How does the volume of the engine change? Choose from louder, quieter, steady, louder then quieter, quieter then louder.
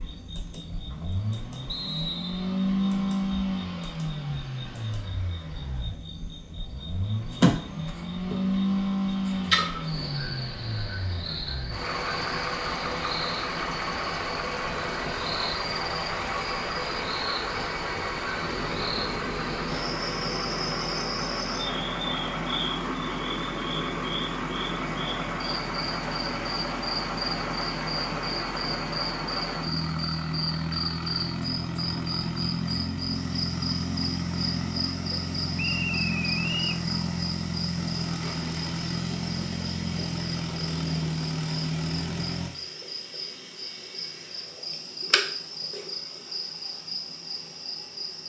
steady.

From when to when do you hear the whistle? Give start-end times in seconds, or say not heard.
1.6-2.5, 35.5-36.9.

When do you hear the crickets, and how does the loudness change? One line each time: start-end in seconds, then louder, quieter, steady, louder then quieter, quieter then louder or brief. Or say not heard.
0.0-48.2 steady.